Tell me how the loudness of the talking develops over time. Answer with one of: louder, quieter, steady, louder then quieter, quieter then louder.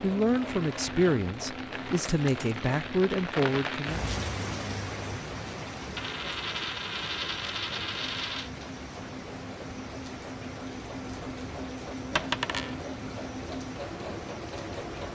steady.